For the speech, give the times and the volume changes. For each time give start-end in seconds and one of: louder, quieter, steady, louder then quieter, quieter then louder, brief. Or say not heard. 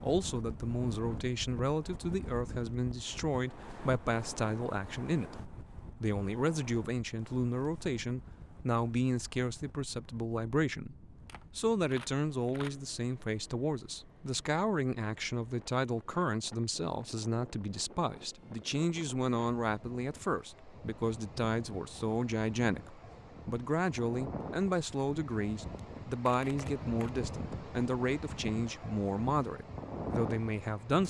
0.0-31.0 steady.